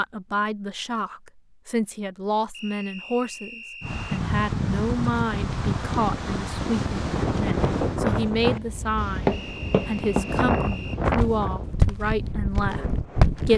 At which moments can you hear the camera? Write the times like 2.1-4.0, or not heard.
not heard.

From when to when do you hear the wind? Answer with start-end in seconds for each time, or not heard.
3.8-13.5.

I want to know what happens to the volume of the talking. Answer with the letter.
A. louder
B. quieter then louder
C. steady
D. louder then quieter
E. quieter
C.